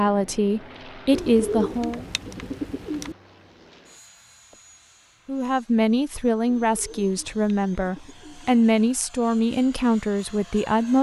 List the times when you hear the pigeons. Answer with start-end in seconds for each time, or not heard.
1.1-3.1, 6.5-8.5.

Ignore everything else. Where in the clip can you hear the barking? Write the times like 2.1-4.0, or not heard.
not heard.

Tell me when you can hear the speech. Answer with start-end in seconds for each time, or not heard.
0.0-2.0, 5.2-10.9.